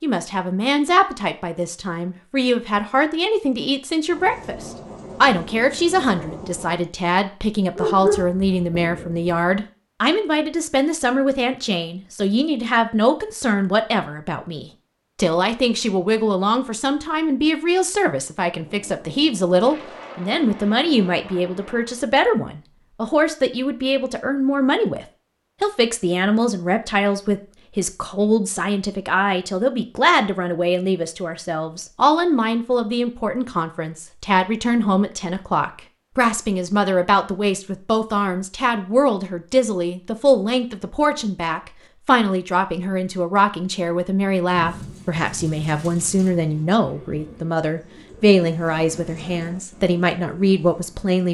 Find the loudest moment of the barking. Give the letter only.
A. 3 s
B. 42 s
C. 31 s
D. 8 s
D.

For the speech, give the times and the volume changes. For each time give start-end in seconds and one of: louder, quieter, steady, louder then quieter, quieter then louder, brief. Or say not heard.
0.0-51.2 steady.